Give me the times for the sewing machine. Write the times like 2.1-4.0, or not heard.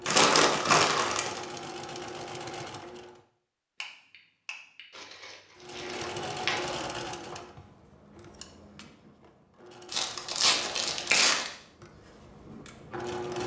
0.0-3.2, 5.5-13.4.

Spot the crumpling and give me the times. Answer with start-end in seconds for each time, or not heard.
0.1-1.4, 5.0-6.8, 9.9-11.5.